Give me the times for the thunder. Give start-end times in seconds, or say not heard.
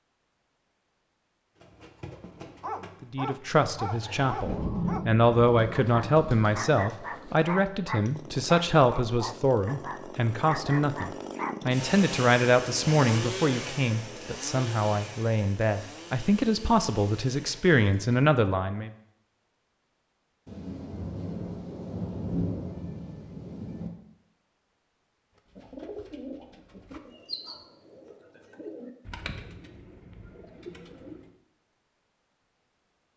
4.5-6.5, 20.4-23.9.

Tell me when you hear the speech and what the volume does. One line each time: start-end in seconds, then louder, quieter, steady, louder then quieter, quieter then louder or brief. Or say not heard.
3.0-18.9 steady.